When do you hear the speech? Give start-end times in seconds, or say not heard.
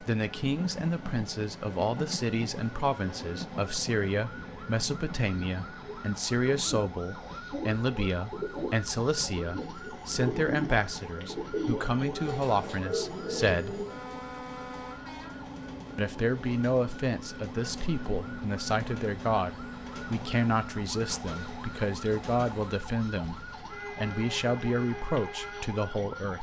0.0-13.8, 15.9-26.3.